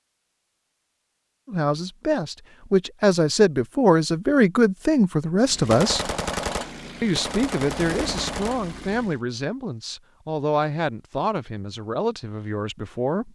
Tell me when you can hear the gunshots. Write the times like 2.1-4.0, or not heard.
5.7-8.7.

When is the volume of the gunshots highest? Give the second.
6 s.